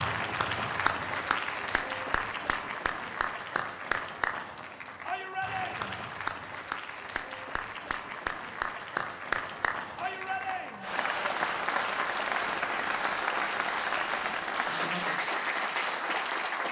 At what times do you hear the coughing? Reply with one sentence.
You can't hear the coughing here.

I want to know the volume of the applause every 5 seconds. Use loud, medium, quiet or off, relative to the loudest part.
loud, medium, loud, loud.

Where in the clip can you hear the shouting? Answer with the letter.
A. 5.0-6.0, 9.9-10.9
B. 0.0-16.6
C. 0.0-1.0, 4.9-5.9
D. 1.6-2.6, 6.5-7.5
A.